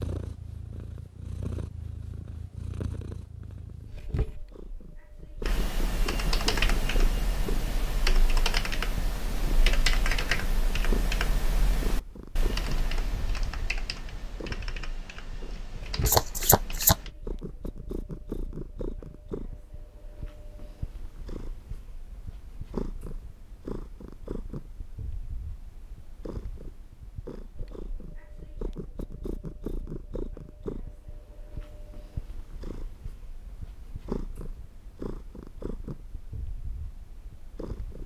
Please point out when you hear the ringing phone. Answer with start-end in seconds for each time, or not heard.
not heard.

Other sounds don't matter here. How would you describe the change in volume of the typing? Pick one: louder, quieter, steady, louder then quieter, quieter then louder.
quieter.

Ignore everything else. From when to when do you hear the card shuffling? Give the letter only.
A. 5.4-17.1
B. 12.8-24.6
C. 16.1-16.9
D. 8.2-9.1
C.